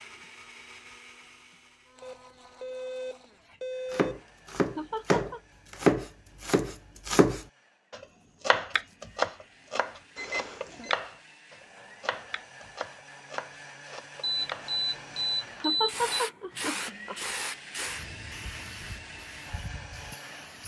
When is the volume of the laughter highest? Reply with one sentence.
The loudest moment of the laughter is at 16 seconds.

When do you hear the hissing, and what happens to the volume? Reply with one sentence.
You can hear the hissing from 15.8 to 20.6 s, getting quieter.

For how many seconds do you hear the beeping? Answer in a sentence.
The beeping can be heard for 5 seconds in total.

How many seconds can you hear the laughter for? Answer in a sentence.
The laughter can be heard for 2 seconds in total.